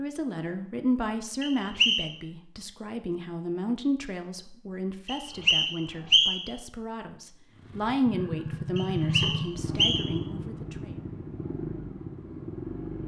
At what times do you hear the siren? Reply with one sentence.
You can't hear the siren here.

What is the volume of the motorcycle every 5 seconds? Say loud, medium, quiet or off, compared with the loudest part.
off, loud, loud.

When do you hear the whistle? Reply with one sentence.
The whistle can be heard from 1.4 to 2.1 s, from 5.0 to 6.5 s and from 8.8 to 10.2 s.